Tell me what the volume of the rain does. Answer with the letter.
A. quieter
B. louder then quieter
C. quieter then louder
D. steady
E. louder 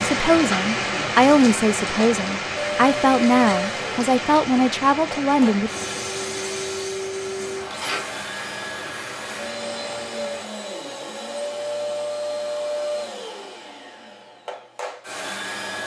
A.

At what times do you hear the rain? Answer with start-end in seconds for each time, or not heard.
0.0-10.5.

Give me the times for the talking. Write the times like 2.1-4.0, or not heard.
0.0-5.7.